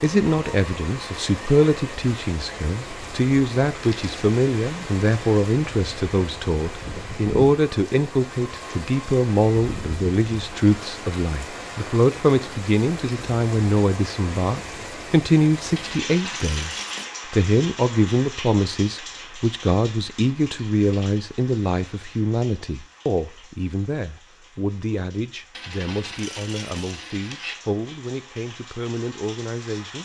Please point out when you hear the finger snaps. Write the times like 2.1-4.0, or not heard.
not heard.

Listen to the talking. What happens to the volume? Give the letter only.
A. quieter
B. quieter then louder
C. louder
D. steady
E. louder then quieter
A.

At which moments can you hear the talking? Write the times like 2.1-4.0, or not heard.
0.0-30.0.